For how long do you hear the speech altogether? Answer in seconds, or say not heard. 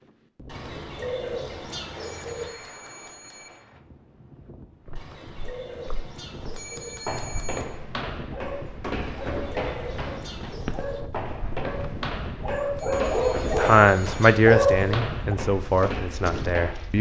3 s.